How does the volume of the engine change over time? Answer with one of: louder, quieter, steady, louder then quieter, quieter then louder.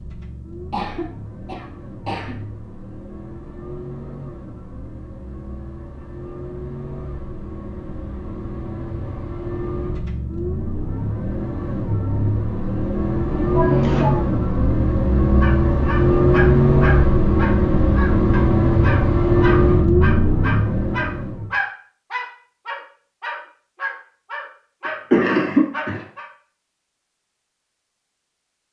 louder.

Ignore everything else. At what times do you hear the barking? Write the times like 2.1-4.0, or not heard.
15.4-26.2.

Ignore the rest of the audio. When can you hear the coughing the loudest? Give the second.
25 s.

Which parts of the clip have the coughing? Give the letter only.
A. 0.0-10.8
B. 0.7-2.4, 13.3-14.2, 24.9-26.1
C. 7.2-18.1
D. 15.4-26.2
B.